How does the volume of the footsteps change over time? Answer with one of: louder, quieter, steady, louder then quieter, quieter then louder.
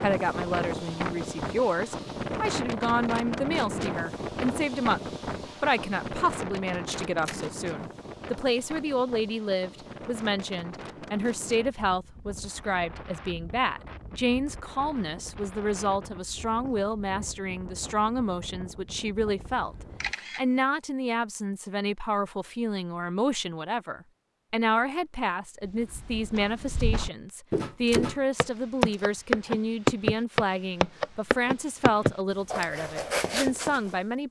louder then quieter.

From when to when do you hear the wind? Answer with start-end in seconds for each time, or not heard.
0.0-20.1.